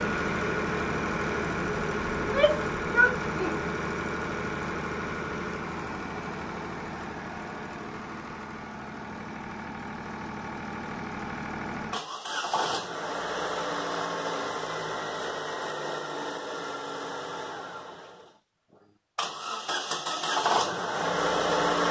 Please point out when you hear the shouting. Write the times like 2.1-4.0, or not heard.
2.1-3.7.